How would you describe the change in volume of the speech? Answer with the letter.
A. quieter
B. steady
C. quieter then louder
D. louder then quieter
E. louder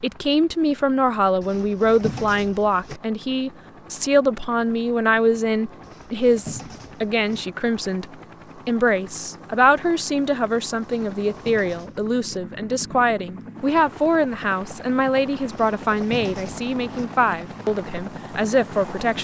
B.